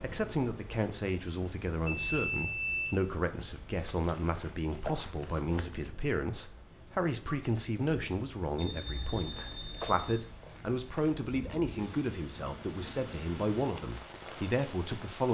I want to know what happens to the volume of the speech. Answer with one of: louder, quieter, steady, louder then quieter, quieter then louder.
steady.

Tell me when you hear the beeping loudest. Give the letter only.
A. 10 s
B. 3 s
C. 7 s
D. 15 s
B.